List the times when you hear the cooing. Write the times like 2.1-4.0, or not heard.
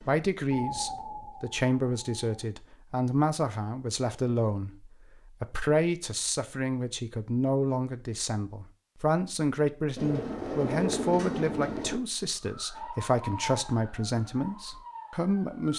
9.9-12.0.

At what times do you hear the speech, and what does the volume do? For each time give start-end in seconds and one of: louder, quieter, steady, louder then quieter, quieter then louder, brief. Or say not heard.
0.0-15.7 steady.